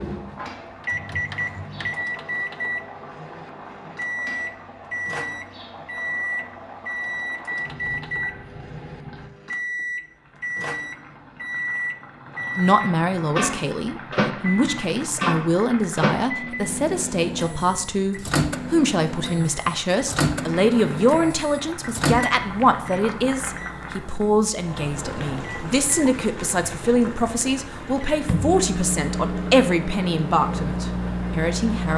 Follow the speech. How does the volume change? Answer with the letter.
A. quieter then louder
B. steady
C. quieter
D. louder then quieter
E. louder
B.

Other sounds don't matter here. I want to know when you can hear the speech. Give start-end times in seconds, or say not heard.
12.6-31.9.